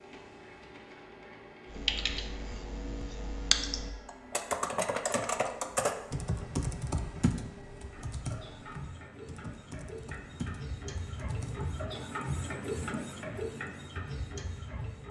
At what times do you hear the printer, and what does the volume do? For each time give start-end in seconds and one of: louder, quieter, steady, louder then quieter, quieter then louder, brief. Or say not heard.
0.0-15.0 louder.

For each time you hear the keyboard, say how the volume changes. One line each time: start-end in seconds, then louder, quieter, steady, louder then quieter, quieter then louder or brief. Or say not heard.
1.6-11.7 quieter.